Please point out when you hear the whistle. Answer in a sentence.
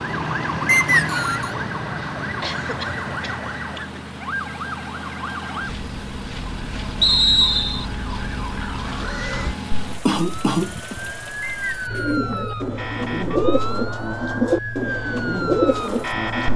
The whistle can be heard from 0.7 to 1.6 s, from 7.0 to 7.8 s and from 11.4 to 12.1 s.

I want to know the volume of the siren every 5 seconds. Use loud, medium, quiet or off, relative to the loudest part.
loud, medium, loud, loud.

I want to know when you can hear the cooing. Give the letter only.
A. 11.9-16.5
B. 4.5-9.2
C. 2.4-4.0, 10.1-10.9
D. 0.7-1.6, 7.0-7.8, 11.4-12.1
A.